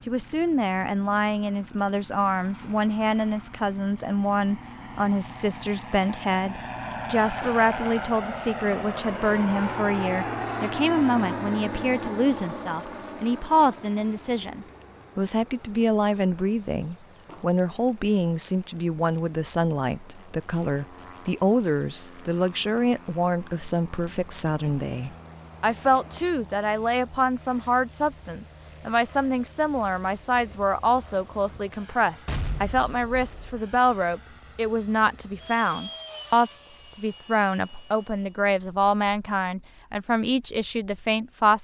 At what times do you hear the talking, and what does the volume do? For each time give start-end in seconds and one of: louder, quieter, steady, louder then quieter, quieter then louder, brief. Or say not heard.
0.1-41.6 steady.